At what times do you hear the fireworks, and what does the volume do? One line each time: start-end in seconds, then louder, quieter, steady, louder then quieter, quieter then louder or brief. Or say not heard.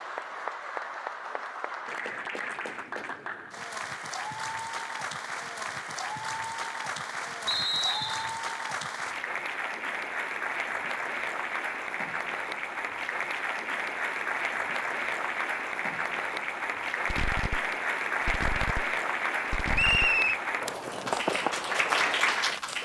17.1-22.2 louder.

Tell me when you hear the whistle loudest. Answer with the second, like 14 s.
20 s.